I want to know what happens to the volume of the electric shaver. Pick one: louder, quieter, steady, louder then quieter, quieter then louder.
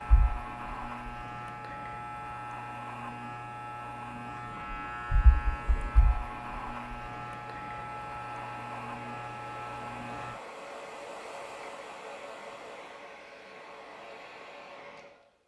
steady.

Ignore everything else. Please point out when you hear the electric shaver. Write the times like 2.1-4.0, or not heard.
0.0-10.3.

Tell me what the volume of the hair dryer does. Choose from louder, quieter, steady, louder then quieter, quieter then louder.
louder.